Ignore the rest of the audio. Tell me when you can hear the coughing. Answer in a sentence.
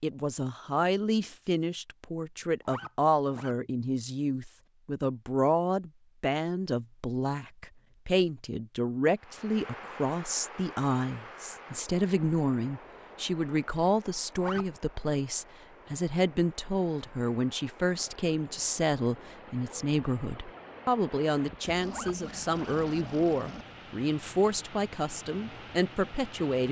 You can't hear the coughing here.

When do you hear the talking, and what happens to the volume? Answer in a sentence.
The talking can be heard from 0.0 to 26.6 s, at a steady volume.